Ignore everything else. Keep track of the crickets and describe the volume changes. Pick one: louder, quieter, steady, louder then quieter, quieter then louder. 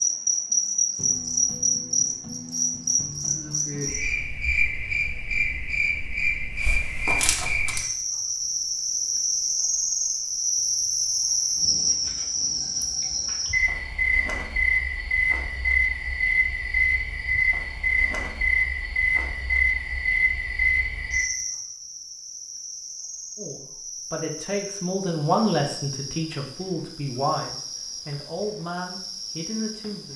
quieter.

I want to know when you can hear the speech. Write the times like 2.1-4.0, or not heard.
23.4-30.1.